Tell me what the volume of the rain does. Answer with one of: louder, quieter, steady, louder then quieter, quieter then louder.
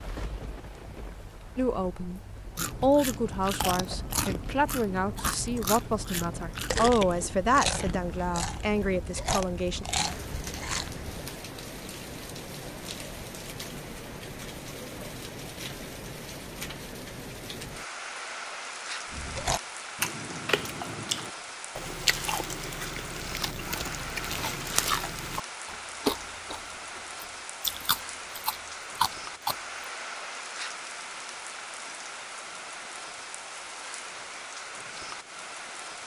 louder.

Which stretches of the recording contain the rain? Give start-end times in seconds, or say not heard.
0.0-36.0.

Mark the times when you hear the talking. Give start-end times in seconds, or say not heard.
1.6-9.8.